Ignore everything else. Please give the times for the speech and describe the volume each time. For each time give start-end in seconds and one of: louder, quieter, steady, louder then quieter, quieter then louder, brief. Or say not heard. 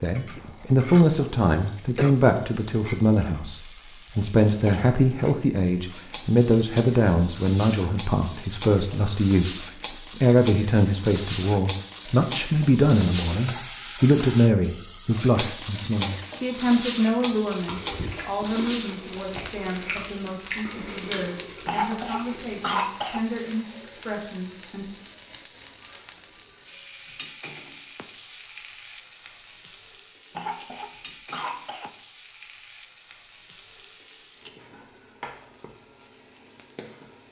0.0-24.9 quieter.